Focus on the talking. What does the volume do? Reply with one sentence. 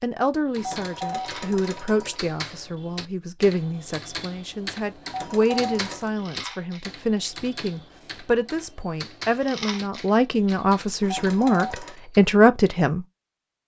The volume of the talking goes up.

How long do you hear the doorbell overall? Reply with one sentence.
The doorbell can be heard for 4 seconds in total.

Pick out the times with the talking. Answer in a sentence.
The talking can be heard from 0.0 to 13.1 s.